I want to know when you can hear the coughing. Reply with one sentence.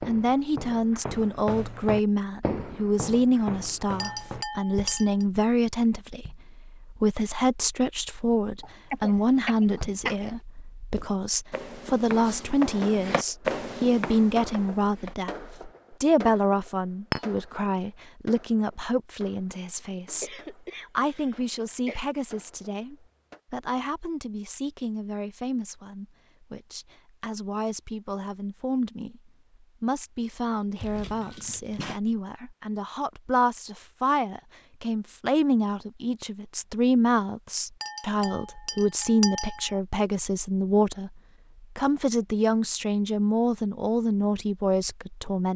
The coughing can be heard from 8.6 to 10.3 s, from 20.2 to 22.1 s and from 30.8 to 32.0 s.